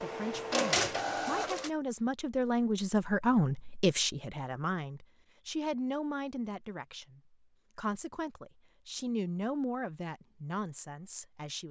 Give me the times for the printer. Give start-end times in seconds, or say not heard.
0.0-1.7.